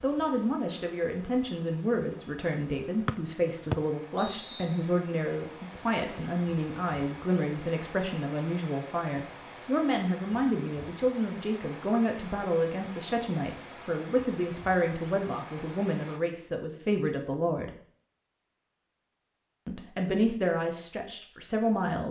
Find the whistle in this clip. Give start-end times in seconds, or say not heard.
3.0-4.8.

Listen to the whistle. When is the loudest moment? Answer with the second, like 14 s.
4 s.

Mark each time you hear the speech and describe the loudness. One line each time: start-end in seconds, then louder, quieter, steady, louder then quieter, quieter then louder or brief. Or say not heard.
0.0-17.7 steady
19.6-22.0 brief.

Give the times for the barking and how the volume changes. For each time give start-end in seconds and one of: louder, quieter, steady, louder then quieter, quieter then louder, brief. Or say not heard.
not heard.